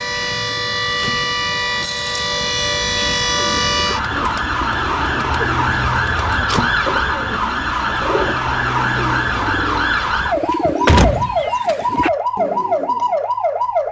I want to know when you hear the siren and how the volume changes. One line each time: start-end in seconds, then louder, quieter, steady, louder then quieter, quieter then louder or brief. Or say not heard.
0.0-13.8 steady.